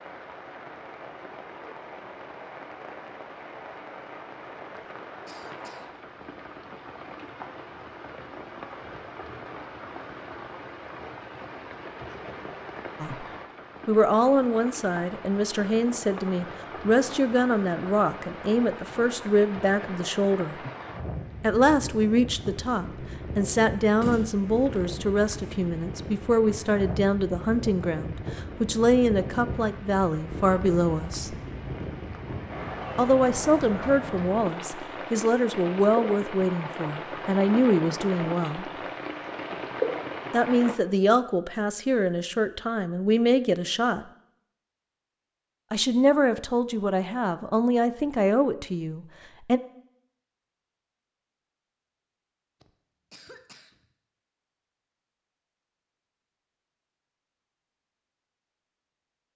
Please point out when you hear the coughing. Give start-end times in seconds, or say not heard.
4.8-6.0, 52.6-53.9.